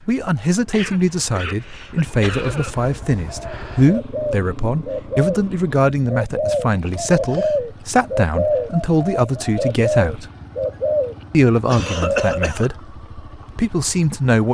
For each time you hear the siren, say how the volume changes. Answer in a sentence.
You can't hear the siren here.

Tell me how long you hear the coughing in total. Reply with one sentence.
The coughing can be heard for 4 seconds in total.